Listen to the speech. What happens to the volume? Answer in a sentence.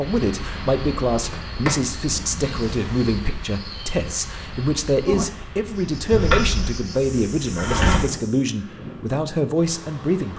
The volume of the speech stays about the same.